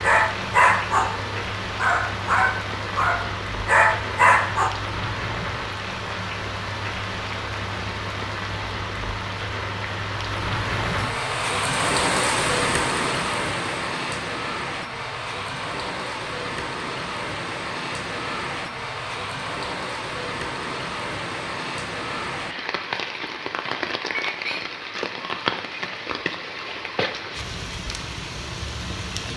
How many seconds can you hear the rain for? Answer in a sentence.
The rain can be heard for 29 seconds in total.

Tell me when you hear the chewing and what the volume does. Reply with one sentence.
You can't hear the chewing here.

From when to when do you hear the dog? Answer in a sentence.
You can hear the dog from 0.0 to 4.7 s.